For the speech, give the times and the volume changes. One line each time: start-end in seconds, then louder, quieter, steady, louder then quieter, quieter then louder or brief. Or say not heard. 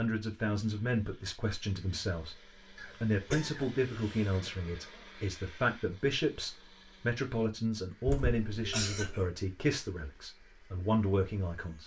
0.0-11.8 steady.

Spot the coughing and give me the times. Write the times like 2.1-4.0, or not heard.
2.8-4.3, 8.1-9.2.